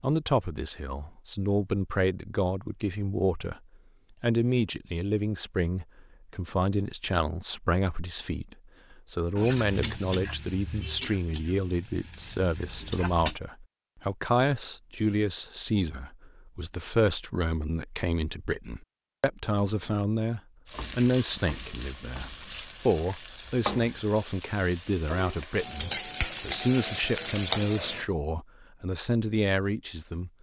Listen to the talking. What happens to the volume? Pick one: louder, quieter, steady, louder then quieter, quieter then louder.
steady.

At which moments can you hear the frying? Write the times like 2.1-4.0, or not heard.
9.3-13.3, 20.6-28.1.